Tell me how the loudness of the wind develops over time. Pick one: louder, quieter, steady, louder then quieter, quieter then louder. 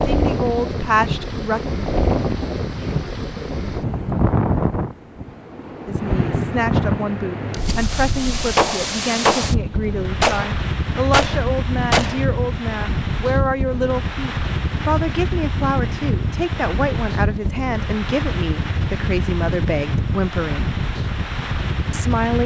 steady.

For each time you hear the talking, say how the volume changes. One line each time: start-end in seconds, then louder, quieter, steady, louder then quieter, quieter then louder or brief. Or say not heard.
0.1-1.6 brief
5.8-20.7 steady
21.9-22.4 brief.